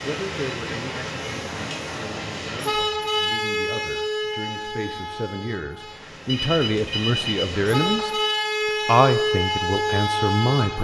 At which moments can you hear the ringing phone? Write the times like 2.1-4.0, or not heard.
6.2-8.1.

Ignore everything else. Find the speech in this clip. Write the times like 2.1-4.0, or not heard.
0.0-8.2, 8.8-10.8.